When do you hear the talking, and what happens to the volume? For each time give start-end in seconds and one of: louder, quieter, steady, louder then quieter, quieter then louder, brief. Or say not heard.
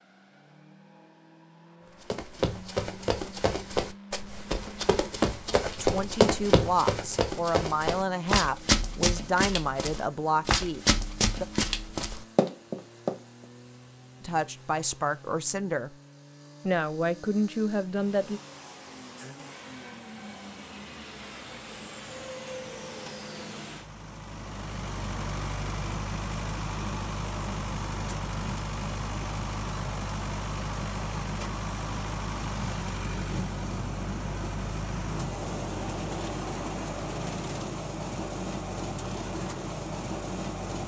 5.6-11.4 steady
14.2-15.9 brief
16.6-18.4 brief.